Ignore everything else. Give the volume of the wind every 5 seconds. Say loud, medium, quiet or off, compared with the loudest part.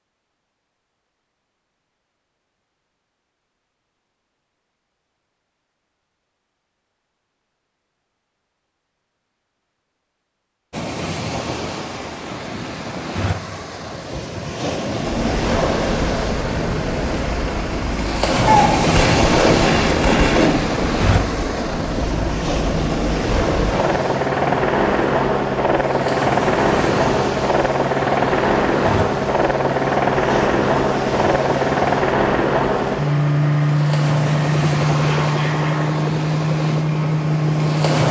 off, off, medium, loud, loud, medium, medium, medium.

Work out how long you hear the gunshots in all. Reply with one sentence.
You can hear the gunshots for 2 seconds altogether.